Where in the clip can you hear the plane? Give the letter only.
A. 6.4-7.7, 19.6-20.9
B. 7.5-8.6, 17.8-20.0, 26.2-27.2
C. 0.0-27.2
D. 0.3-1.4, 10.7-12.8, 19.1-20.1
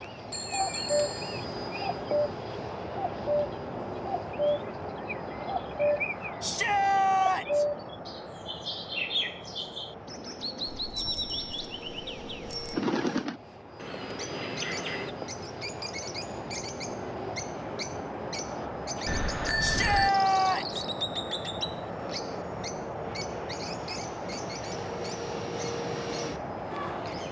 C.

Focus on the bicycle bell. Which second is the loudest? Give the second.
20 s.